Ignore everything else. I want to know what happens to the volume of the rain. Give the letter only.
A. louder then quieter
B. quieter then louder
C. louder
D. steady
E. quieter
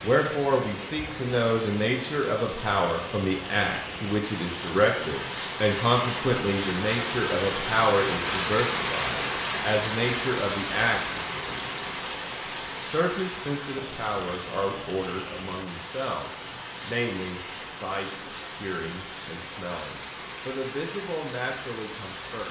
A.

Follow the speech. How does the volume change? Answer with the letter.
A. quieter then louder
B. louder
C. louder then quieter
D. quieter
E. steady
D.